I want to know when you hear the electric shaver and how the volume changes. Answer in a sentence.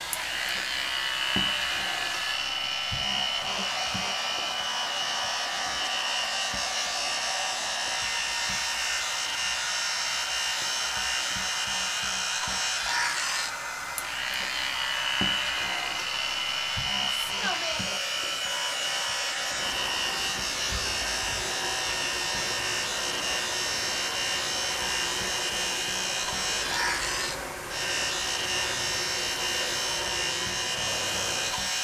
You can hear the electric shaver from 0.0 to 31.8 s, at a steady volume.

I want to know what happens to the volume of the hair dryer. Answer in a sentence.
The loudness of the hair dryer stays about the same.